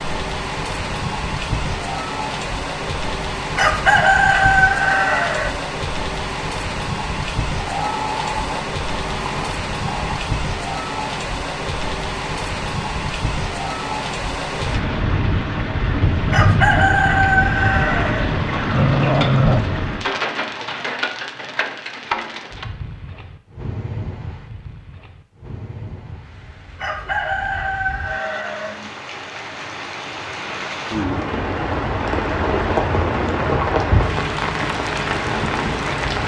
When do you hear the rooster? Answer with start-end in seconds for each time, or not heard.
3.5-5.5, 16.3-18.2, 26.8-28.8.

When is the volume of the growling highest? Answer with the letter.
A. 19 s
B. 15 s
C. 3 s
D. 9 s
A.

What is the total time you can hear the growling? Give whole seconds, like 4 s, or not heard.
4 s.